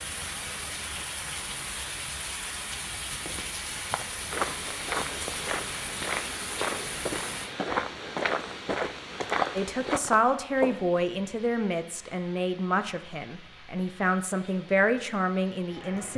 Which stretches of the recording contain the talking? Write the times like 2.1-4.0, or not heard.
9.6-16.1.